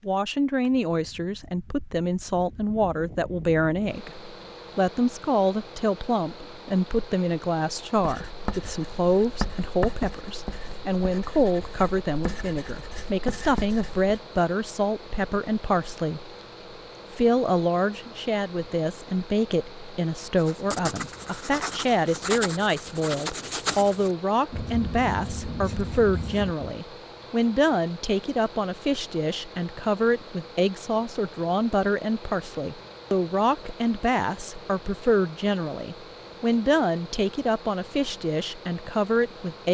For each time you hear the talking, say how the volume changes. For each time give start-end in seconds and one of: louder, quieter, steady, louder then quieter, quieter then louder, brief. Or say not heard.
0.1-16.3 steady
17.1-39.6 steady.